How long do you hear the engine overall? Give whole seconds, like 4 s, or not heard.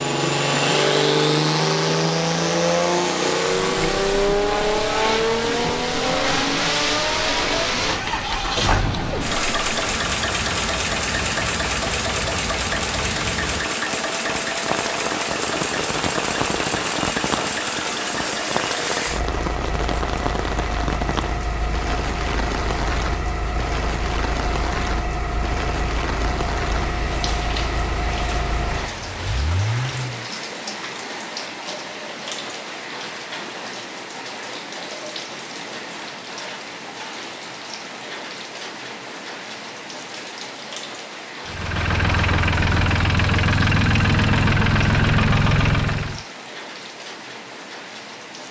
35 s.